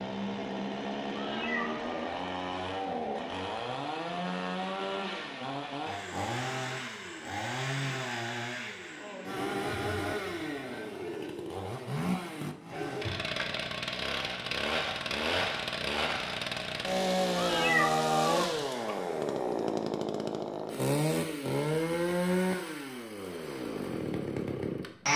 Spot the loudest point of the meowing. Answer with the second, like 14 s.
18 s.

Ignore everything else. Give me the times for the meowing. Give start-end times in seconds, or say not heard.
1.1-2.0, 17.4-18.9.